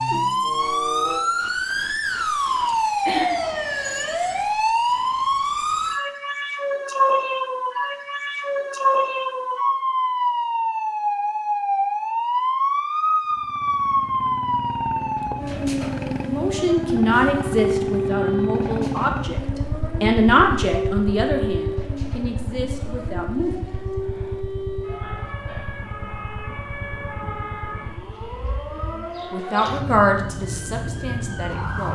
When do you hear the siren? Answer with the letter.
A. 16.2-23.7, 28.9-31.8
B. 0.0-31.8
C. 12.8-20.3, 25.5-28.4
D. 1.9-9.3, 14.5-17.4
B.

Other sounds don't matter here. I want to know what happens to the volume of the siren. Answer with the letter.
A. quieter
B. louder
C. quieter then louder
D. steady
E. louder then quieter
A.